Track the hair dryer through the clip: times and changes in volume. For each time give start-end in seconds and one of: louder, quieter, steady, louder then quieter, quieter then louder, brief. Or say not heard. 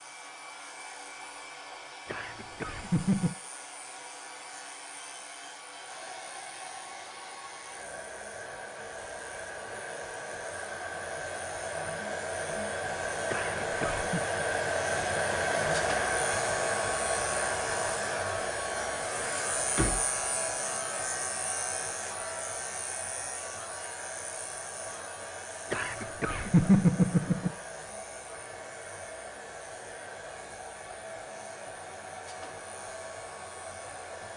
0.0-34.3 louder then quieter.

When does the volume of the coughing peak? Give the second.
27 s.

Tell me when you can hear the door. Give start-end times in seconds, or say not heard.
19.2-20.1.